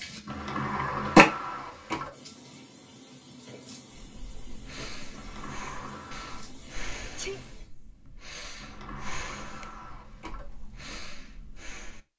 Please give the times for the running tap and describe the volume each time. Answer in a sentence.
The running tap can be heard from 0.0 to 7.7 s, getting quieter.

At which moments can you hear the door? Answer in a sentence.
You can hear the door from 0.2 to 2.1 s, from 5.2 to 6.5 s and from 8.6 to 10.6 s.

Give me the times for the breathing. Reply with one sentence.
The breathing can be heard from 4.0 to 12.0 s.